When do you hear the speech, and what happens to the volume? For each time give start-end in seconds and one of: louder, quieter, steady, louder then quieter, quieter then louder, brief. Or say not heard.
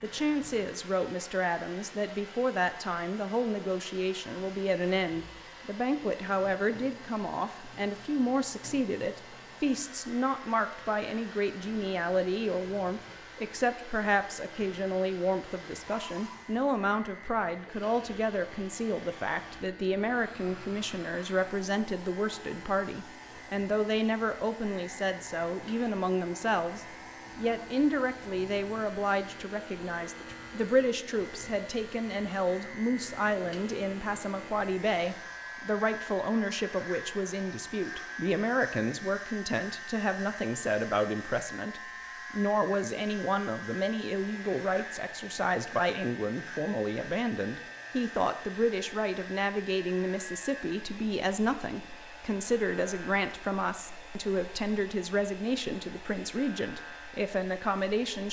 0.0-58.2 steady.